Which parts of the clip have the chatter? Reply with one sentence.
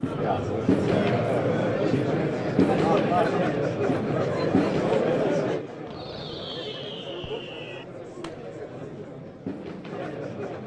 You can hear the chatter from 0.0 to 10.6 s.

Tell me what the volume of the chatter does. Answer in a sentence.
The volume of the chatter goes down.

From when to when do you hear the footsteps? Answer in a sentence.
The footsteps can't be heard in this clip.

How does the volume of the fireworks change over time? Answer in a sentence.
The volume of the fireworks goes down.